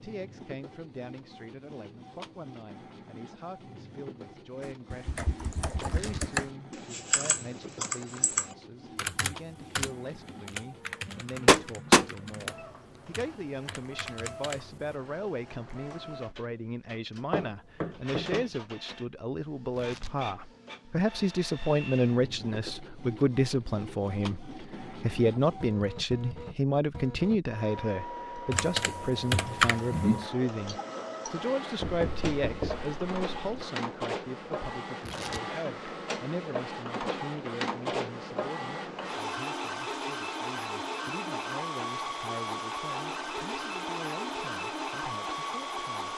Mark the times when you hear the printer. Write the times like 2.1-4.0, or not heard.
0.0-46.1.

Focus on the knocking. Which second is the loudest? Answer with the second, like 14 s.
12 s.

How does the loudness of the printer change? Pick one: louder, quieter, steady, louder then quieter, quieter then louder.
louder.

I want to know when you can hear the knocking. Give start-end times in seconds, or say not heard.
11.4-12.1, 17.3-18.4, 31.8-33.6.